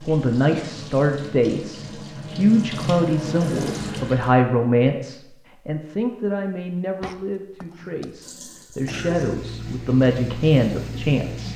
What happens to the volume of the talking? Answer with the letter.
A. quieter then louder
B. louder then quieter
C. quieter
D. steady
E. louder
A.